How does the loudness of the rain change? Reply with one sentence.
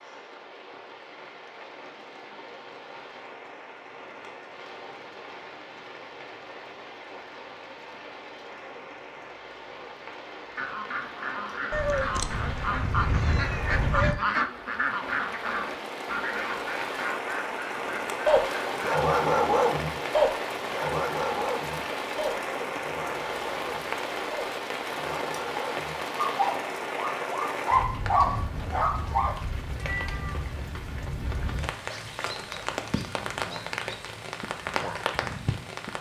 The volume of the rain goes up.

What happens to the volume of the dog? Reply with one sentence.
The volume of the dog goes down, then up.